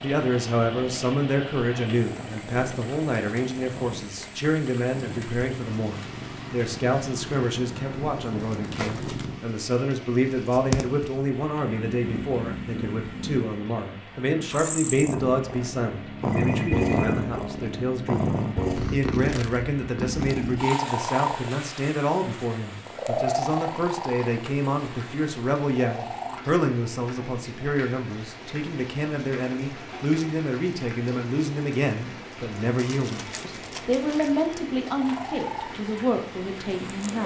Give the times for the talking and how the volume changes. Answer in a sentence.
You can hear the talking from 0.0 to 37.2 s, at a steady volume.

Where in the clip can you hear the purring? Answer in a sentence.
You can hear the purring from 0.0 to 26.4 s and from 35.0 to 37.2 s.